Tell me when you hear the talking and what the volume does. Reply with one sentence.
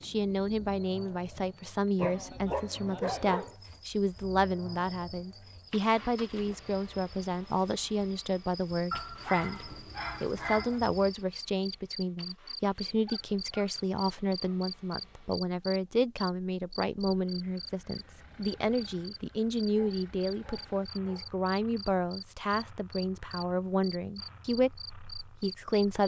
You can hear the talking from 0.0 to 26.0 s, at a steady volume.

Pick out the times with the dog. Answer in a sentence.
You can hear the dog from 1.9 to 3.5 s, from 8.9 to 10.8 s, from 13.1 to 14.7 s and from 19.7 to 21.4 s.